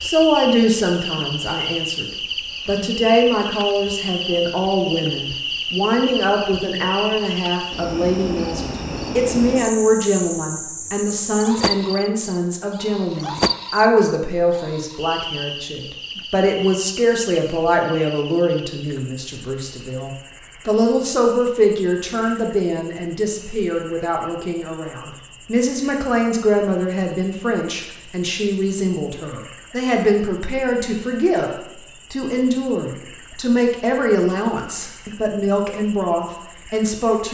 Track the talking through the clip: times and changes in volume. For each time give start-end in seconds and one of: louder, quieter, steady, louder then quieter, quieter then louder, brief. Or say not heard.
0.0-37.2 steady.